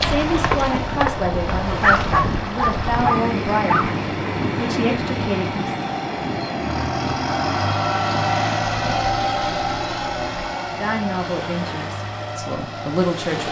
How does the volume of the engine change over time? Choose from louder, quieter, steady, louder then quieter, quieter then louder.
louder then quieter.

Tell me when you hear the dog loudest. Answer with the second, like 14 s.
2 s.